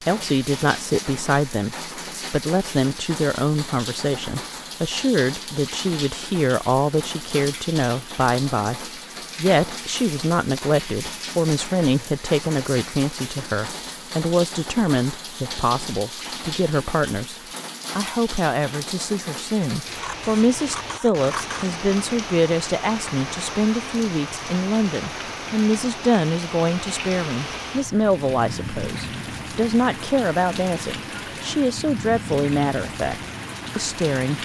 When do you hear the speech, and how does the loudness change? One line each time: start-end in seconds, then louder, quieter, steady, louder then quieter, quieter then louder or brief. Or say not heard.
0.1-34.4 steady.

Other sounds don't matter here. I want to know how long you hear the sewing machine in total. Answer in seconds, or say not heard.
not heard.